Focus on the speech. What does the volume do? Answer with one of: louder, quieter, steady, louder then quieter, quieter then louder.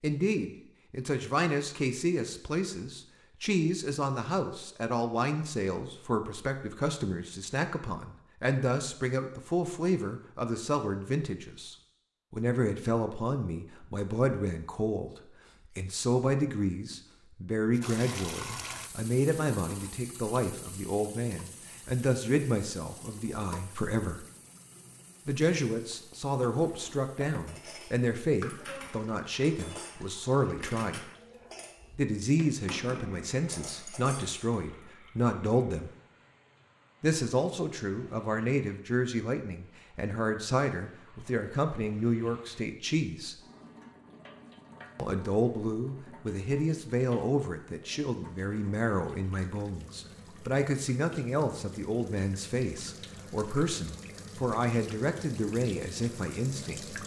steady.